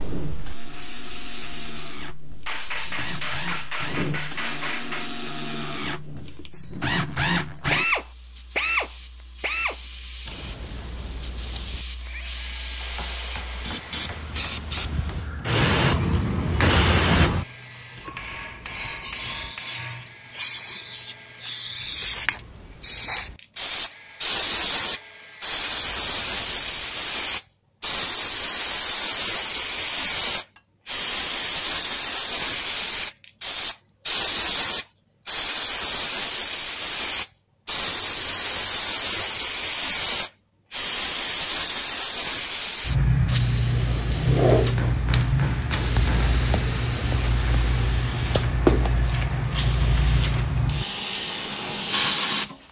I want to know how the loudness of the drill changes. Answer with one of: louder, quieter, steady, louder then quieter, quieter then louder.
louder then quieter.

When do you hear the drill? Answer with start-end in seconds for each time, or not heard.
0.0-26.9.